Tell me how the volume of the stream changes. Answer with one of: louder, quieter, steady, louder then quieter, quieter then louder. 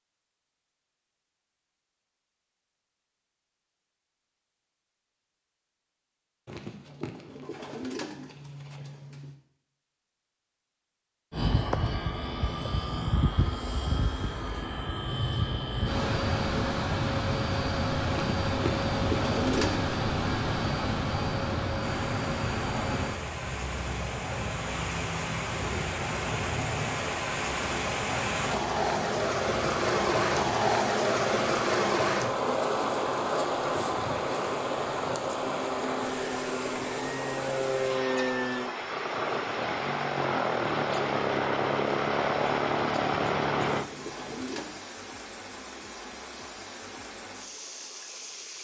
louder then quieter.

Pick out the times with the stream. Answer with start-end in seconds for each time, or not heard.
21.8-48.5.